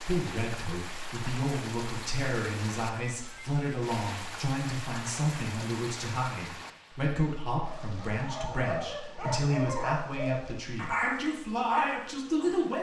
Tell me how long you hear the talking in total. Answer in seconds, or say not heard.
13 s.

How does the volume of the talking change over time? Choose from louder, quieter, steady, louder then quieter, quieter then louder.
steady.